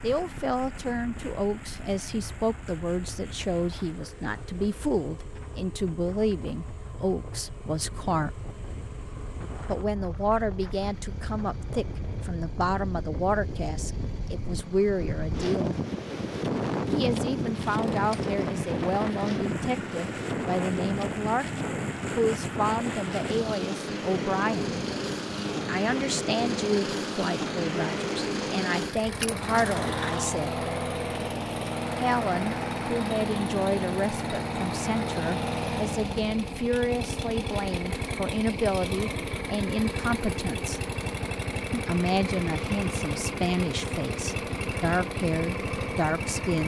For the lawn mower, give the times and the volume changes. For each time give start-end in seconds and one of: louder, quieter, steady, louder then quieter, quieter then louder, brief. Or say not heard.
0.0-46.6 louder.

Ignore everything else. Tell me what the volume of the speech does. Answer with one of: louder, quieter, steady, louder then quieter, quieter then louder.
steady.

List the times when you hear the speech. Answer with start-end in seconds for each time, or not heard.
0.0-8.4, 9.7-15.8, 16.9-24.8, 25.6-30.6, 31.9-40.8, 41.7-46.6.